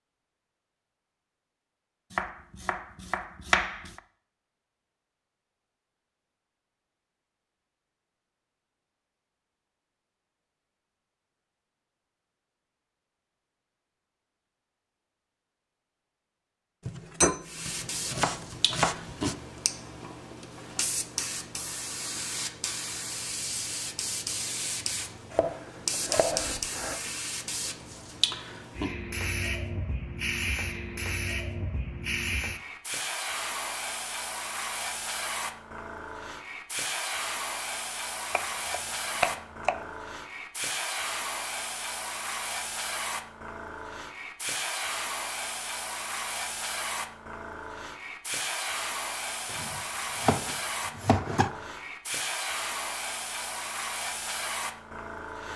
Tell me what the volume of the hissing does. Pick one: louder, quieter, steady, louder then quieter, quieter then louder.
steady.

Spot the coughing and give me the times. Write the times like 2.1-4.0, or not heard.
not heard.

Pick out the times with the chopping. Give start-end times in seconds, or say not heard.
2.1-4.0, 16.9-19.4, 25.3-27.0, 38.3-39.9, 49.5-51.5.